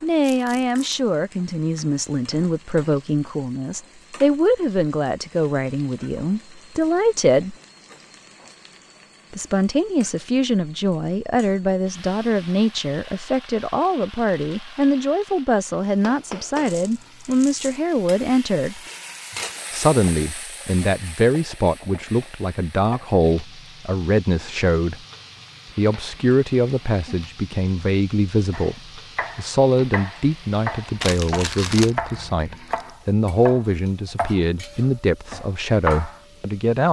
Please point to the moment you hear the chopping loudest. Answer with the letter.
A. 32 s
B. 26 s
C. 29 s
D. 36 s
D.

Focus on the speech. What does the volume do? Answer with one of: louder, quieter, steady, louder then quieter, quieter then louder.
steady.